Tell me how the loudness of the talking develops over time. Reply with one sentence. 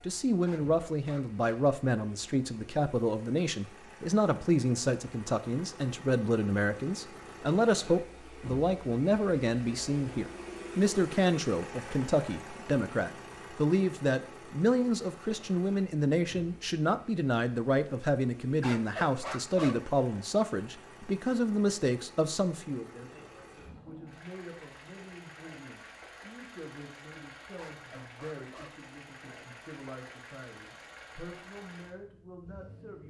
The volume of the talking goes down.